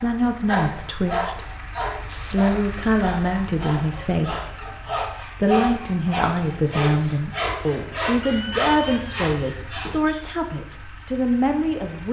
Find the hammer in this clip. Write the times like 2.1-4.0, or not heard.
not heard.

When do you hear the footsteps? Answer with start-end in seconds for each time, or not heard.
not heard.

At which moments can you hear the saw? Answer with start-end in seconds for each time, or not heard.
0.0-10.2.